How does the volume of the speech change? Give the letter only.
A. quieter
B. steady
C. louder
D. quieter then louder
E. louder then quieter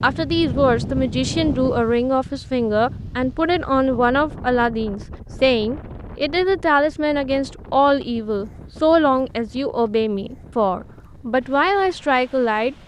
B.